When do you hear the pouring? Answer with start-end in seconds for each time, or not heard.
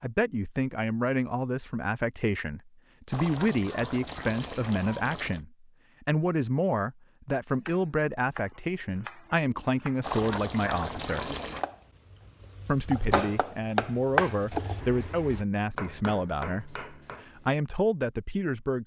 3.1-5.4, 10.0-11.7.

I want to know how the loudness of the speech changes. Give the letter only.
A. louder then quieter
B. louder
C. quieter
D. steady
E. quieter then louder
D.